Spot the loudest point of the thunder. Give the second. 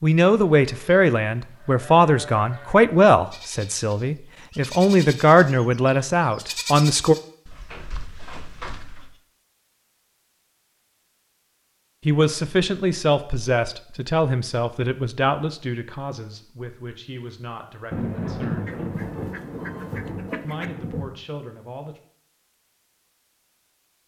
18 s.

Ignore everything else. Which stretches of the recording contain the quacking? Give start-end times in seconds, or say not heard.
18.6-20.7.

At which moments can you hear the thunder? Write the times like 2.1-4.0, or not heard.
17.9-21.1.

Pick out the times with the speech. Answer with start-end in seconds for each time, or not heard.
0.0-7.2, 12.0-18.8, 20.4-22.0.